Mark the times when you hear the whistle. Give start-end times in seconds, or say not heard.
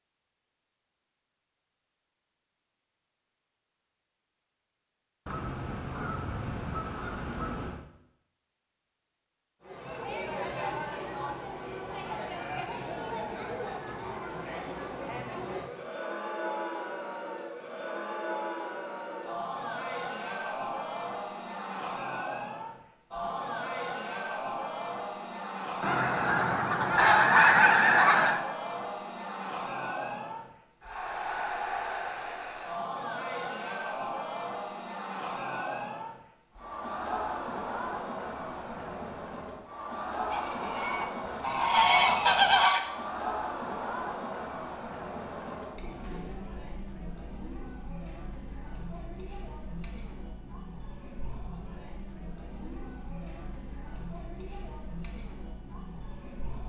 not heard.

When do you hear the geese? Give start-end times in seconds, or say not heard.
5.2-7.8, 25.8-28.4, 40.3-42.8.